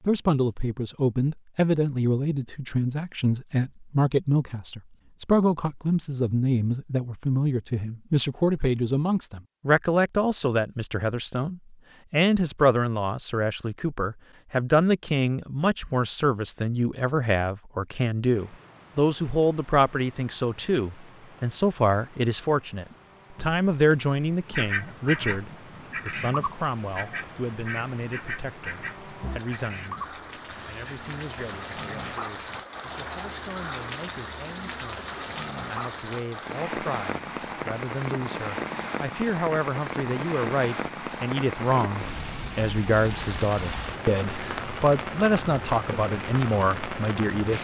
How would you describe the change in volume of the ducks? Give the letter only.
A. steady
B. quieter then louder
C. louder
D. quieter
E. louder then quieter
D.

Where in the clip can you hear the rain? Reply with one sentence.
You can hear the rain from 18.3 to 47.5 s.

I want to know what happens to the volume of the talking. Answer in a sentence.
The loudness of the talking goes down, then up.